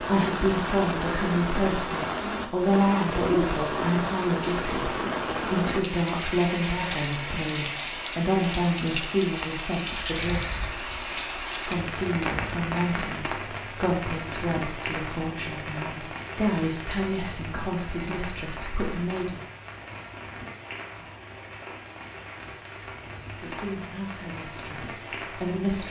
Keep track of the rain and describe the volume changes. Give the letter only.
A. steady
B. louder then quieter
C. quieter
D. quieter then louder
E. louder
C.